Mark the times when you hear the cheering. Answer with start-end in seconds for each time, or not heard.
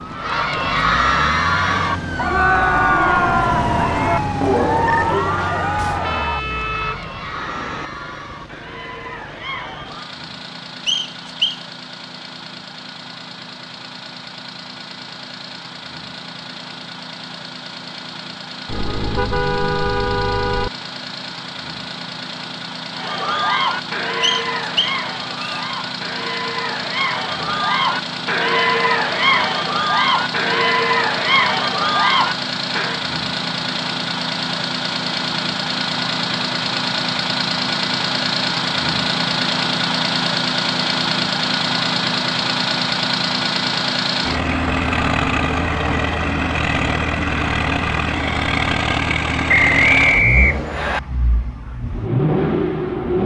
0.1-10.2, 22.9-33.0.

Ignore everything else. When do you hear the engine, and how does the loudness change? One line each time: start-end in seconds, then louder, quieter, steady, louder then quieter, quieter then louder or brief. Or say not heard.
0.0-53.2 louder.